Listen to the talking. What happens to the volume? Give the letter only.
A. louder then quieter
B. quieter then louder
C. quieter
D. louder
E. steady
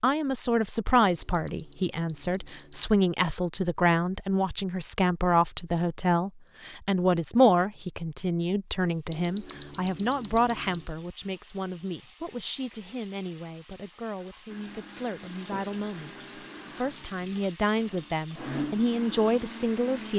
B.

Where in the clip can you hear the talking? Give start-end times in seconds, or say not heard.
0.0-20.1.